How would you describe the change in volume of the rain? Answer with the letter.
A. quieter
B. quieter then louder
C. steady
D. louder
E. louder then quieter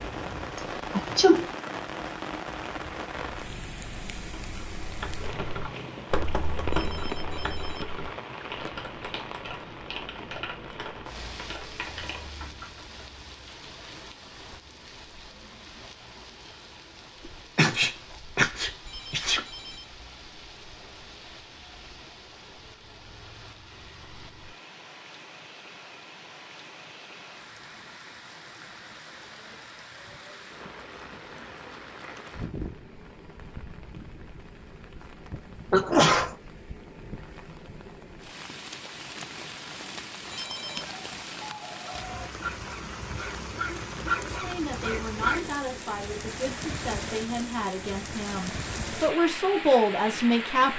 B.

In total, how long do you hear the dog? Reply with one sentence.
You can hear the dog for 5 seconds altogether.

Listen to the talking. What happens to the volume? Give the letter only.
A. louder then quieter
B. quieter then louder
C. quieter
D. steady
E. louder
E.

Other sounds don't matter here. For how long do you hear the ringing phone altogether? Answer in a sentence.
The ringing phone can be heard for 3 seconds in total.